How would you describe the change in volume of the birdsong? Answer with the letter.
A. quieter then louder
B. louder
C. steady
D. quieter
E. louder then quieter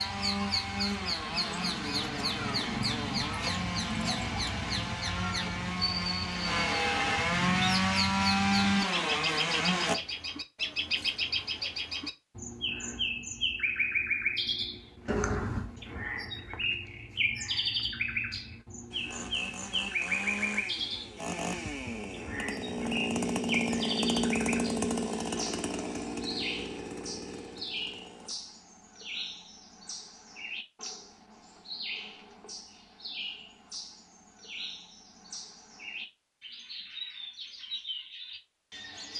D.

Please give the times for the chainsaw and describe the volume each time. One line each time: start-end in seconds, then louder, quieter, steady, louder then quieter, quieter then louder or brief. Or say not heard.
0.0-9.9 louder
18.9-28.4 louder then quieter.